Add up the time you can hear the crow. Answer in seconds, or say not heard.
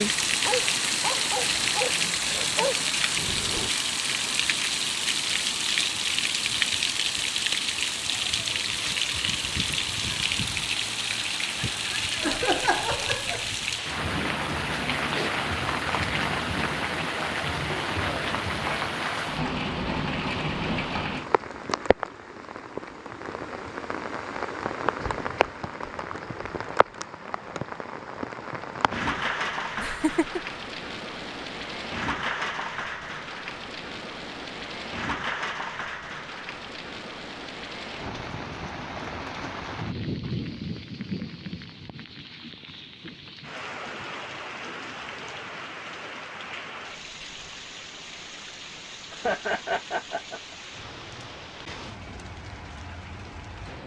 not heard.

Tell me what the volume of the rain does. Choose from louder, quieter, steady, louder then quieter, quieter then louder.
quieter.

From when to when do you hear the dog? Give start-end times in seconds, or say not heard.
0.1-3.7.